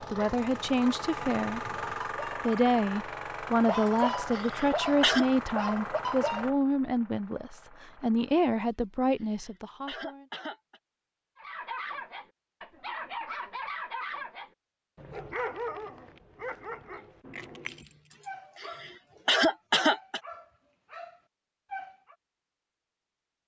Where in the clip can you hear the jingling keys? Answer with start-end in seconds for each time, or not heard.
17.3-18.4.